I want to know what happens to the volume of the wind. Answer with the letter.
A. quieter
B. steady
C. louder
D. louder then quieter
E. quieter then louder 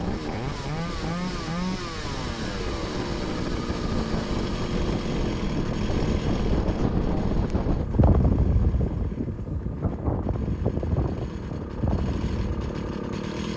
C.